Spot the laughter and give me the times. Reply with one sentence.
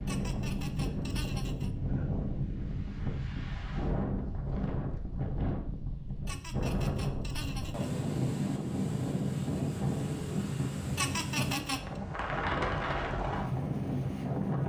The laughter can be heard from 0.1 to 1.7 s, from 6.2 to 7.9 s and from 10.9 to 12.0 s.